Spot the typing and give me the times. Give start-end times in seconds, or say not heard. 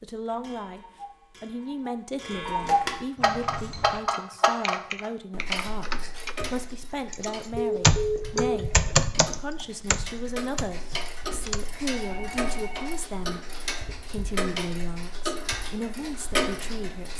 3.2-4.0, 4.6-6.5, 7.1-11.7.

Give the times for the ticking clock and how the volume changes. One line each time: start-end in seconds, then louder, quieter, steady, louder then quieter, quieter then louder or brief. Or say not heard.
0.2-17.1 quieter then louder.